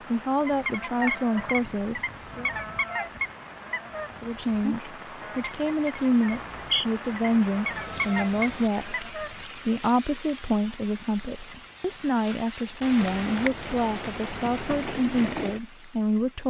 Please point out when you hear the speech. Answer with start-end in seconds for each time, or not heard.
0.1-2.5, 4.2-16.4.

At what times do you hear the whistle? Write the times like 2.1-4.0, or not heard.
6.3-6.8.